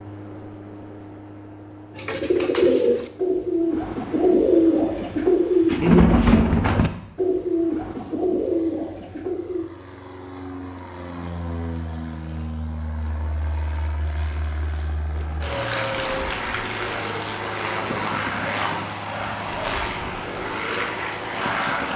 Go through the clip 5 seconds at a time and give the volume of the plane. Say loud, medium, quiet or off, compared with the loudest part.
quiet, quiet, medium, loud, loud.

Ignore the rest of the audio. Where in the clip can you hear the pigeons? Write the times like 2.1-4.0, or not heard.
1.9-9.7, 15.1-21.9.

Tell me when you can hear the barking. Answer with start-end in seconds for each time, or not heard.
not heard.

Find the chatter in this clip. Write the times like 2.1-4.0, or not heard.
not heard.